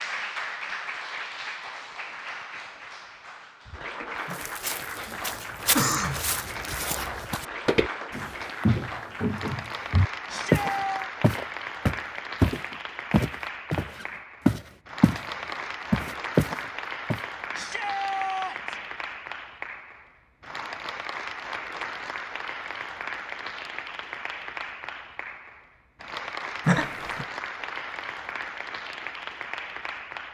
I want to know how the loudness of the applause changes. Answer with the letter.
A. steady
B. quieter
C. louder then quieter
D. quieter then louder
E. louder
A.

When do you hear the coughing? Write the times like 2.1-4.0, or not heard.
4.2-6.2, 26.6-27.2.